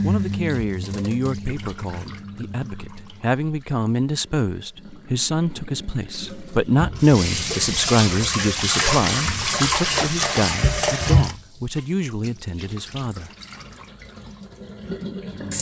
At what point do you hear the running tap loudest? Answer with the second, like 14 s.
11 s.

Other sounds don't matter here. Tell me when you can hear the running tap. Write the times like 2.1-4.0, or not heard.
0.0-15.5.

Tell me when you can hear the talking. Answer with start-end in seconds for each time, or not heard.
0.0-13.3.